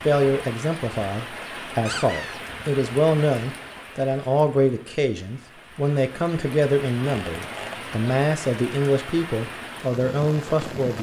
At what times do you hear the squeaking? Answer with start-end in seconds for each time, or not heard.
1.9-2.4, 7.0-7.8.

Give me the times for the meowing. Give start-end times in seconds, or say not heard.
not heard.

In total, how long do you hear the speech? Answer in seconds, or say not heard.
11 s.